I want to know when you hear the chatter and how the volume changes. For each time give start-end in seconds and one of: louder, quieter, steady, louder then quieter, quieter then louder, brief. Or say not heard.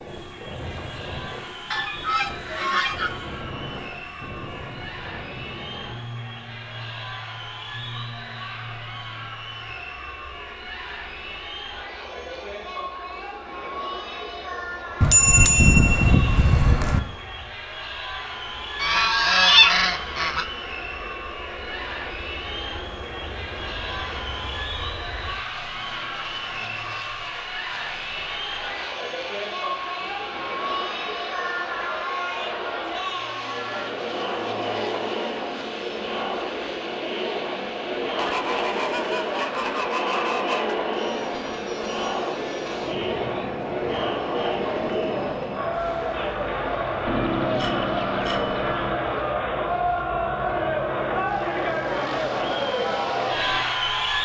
0.0-54.2 louder.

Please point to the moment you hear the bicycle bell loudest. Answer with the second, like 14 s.
15 s.